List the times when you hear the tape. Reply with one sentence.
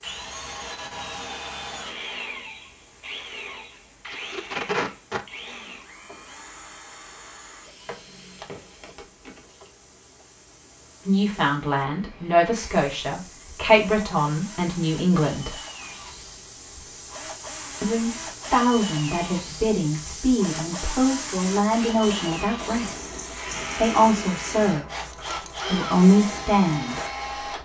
The tape can be heard from 4.0 to 5.2 s.